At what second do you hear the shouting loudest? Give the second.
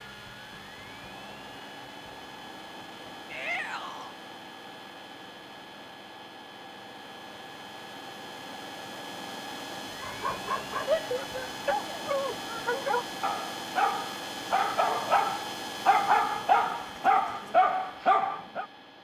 11 s.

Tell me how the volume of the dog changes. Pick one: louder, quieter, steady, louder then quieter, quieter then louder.
louder.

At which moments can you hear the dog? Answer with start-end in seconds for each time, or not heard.
10.0-18.6.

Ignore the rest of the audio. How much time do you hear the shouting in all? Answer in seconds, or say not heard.
3 s.